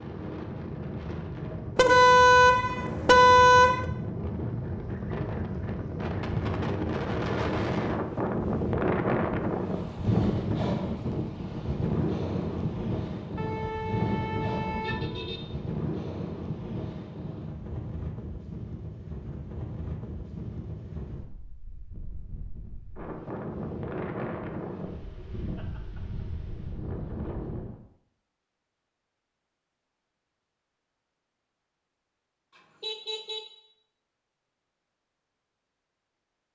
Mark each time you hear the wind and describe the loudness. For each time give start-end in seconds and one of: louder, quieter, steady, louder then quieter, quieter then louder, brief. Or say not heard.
0.0-27.8 louder then quieter.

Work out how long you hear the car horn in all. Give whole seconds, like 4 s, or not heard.
5 s.